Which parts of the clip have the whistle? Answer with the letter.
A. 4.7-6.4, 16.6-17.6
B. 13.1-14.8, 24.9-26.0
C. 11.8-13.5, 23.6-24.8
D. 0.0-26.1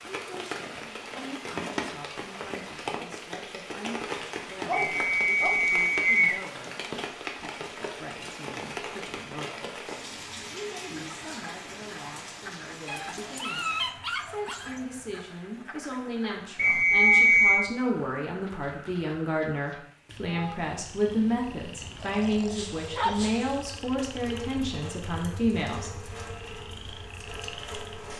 A.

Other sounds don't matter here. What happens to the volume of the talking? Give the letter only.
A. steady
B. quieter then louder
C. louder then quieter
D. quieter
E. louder
E.